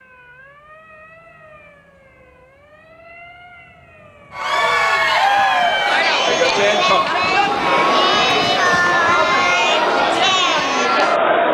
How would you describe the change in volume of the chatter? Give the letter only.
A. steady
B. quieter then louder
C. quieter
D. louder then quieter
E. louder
A.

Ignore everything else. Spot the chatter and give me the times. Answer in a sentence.
The chatter can be heard from 4.3 to 11.4 s.